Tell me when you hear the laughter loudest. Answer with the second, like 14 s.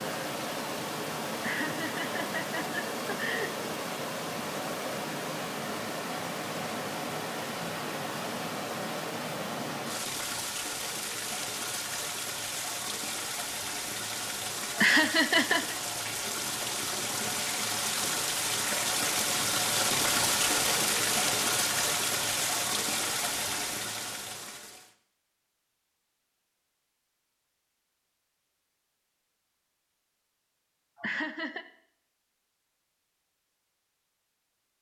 15 s.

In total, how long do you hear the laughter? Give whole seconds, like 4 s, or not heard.
4 s.